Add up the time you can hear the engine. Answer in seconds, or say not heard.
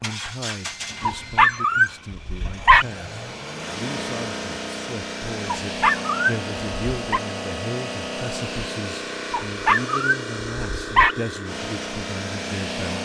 13 s.